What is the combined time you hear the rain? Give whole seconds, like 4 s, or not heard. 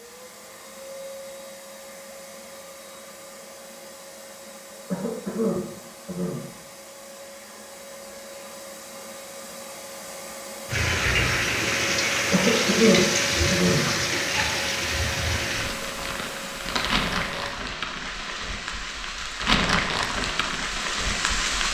11 s.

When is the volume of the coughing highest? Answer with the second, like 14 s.
13 s.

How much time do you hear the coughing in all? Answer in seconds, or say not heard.
3 s.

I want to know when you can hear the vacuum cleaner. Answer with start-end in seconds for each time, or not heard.
0.0-17.6.